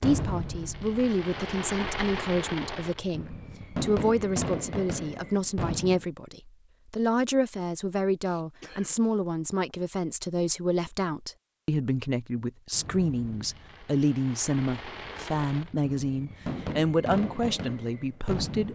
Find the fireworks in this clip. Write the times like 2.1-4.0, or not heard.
0.0-6.0, 12.7-18.6.